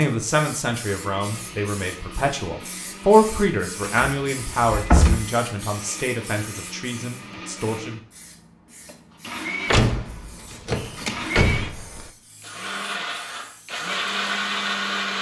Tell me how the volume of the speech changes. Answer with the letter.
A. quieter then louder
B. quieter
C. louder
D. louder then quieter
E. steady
D.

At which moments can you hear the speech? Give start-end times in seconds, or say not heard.
0.0-8.0.